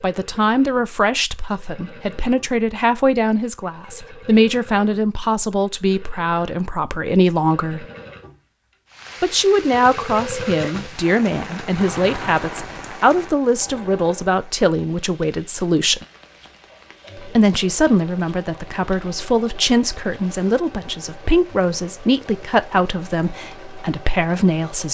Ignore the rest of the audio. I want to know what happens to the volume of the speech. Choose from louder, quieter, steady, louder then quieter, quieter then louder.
steady.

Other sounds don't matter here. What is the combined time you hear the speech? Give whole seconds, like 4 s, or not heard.
22 s.